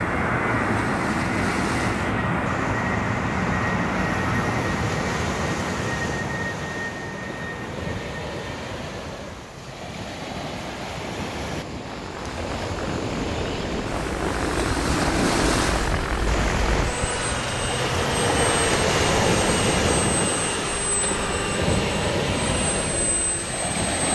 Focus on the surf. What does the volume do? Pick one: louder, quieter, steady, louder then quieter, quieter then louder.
louder.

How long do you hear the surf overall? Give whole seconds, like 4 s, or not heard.
24 s.